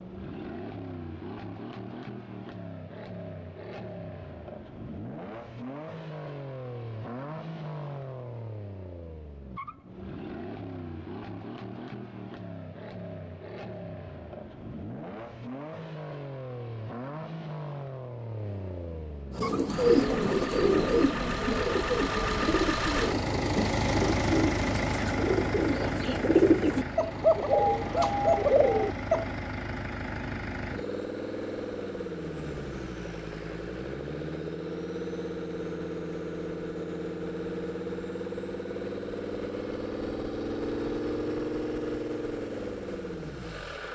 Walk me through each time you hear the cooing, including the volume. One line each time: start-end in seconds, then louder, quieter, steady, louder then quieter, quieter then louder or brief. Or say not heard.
19.4-29.2 quieter then louder.